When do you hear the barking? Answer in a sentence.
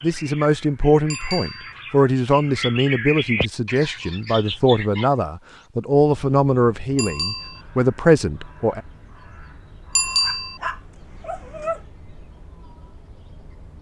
You can hear the barking from 10.2 to 11.8 s.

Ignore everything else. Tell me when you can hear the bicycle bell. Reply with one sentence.
The bicycle bell can be heard from 1.1 to 1.8 s, from 7.0 to 7.6 s and from 9.9 to 10.6 s.